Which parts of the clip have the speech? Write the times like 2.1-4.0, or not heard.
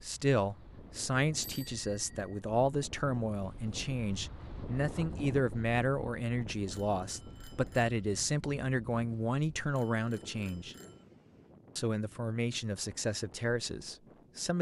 0.0-10.8, 11.8-14.5.